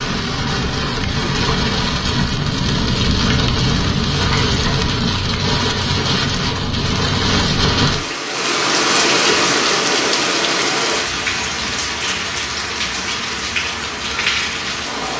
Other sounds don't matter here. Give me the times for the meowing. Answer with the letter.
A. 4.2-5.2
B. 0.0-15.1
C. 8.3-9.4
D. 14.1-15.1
A.